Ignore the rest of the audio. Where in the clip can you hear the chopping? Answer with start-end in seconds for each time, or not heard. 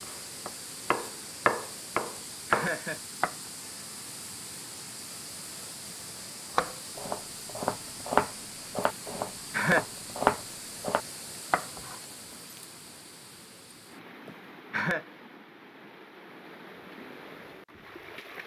0.0-3.4, 6.5-12.1.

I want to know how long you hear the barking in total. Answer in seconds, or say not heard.
not heard.